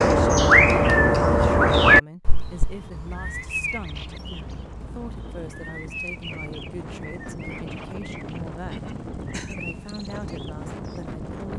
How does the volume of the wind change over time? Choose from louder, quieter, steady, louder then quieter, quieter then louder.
louder.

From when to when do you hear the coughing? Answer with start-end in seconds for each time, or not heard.
8.2-9.6.